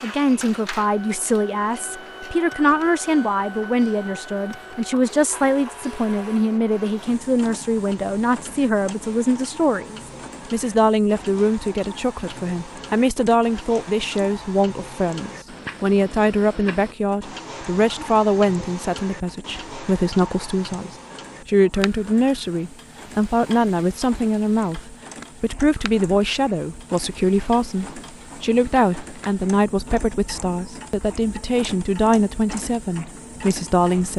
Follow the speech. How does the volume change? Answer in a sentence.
The loudness of the speech stays about the same.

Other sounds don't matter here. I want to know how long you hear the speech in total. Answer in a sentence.
You can hear the speech for 34 seconds altogether.